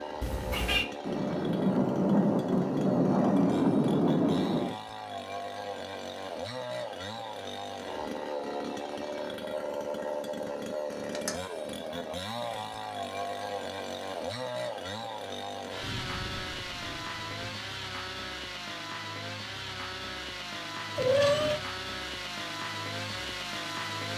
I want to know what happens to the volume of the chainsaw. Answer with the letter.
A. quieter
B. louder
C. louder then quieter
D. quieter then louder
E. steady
E.